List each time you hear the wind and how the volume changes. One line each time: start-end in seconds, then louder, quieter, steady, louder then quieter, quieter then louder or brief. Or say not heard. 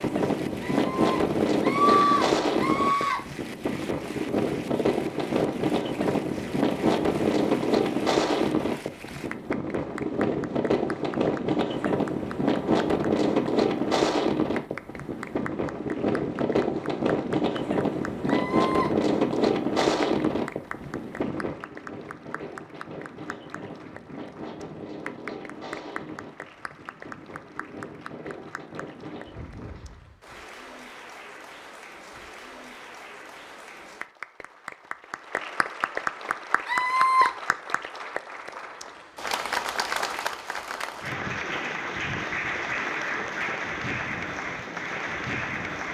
0.0-30.2 quieter.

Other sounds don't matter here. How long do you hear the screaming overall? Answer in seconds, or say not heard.
4 s.